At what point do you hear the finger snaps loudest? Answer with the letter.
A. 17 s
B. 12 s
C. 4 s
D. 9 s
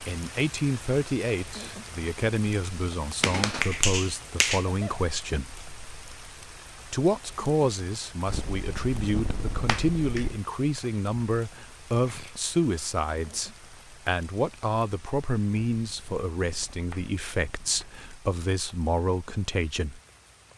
C.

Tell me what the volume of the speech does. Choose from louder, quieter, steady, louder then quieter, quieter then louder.
steady.